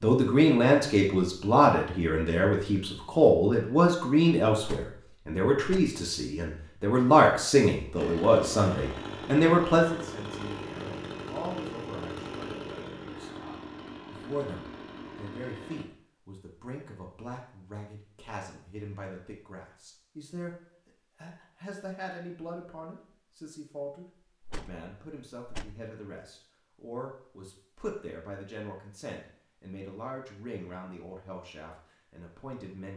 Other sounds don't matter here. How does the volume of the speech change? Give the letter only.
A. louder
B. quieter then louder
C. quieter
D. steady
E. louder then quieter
C.